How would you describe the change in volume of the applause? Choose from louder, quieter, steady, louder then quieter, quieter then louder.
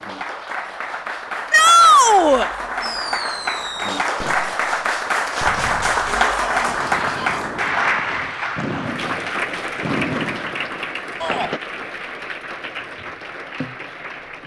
louder then quieter.